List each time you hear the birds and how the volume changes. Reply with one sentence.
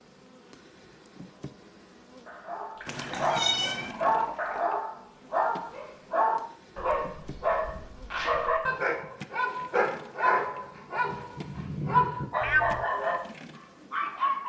You can't hear the birds here.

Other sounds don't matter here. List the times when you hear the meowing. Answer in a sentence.
You can hear the meowing from 2.9 to 4.0 s and from 12.4 to 12.8 s.